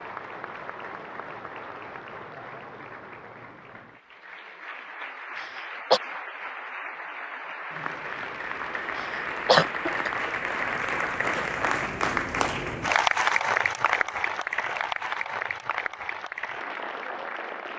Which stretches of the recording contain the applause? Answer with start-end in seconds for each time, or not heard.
0.0-17.7.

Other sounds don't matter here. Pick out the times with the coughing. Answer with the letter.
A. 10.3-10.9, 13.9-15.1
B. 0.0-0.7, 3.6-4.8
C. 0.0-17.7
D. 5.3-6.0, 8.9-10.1
D.